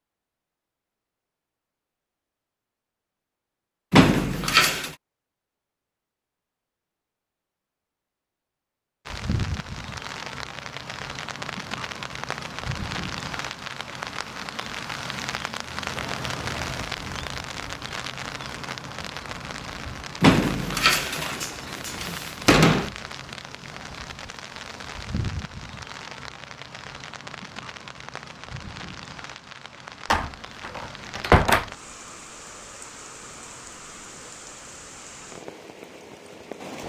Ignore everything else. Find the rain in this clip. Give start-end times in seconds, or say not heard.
9.1-36.8.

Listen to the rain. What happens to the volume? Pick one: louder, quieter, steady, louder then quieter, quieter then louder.
quieter.